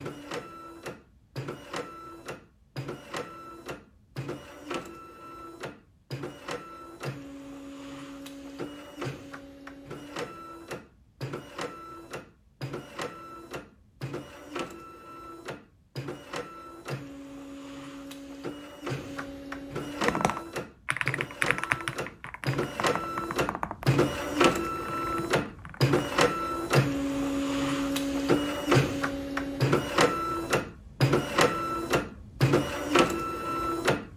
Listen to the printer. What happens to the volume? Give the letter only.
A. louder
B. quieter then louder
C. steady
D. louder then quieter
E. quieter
A.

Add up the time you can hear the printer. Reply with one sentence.
The printer can be heard for 34 seconds in total.